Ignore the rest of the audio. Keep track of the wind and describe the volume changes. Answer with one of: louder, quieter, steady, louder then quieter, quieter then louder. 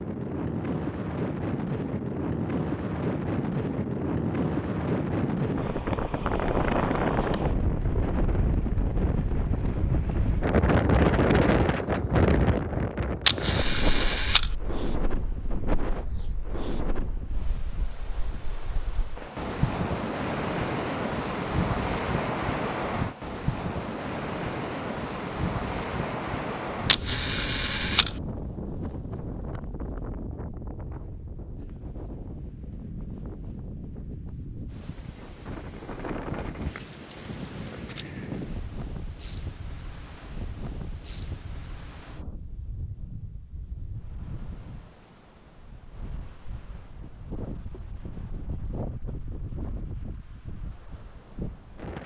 quieter.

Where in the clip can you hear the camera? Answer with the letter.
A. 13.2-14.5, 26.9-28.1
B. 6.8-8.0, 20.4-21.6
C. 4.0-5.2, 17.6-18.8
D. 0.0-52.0
A.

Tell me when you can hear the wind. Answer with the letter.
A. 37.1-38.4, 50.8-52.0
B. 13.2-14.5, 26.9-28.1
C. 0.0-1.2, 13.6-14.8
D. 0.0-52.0
D.